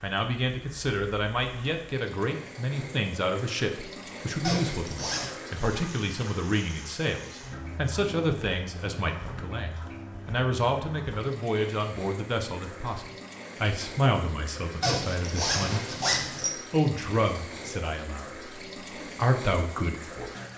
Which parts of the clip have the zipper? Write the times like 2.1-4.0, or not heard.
4.4-5.3, 14.8-16.5.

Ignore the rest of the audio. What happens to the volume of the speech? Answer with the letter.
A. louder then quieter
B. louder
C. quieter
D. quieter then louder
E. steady
E.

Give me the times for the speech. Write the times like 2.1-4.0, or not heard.
0.0-15.8, 16.7-20.3.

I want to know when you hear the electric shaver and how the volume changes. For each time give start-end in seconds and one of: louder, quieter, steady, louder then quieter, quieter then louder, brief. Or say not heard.
not heard.